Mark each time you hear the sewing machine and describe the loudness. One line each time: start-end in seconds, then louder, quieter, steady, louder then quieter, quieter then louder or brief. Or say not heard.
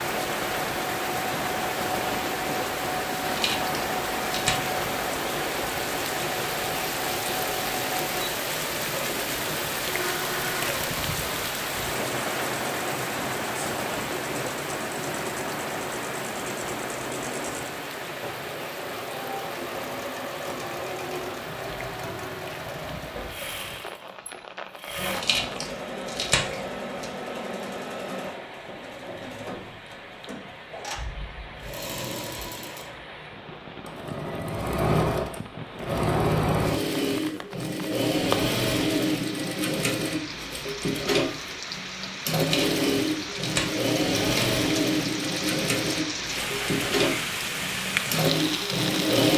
0.0-49.3 louder.